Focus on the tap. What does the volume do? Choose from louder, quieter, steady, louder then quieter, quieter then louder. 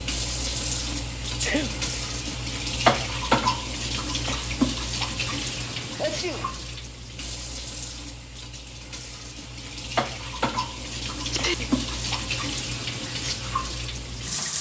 quieter then louder.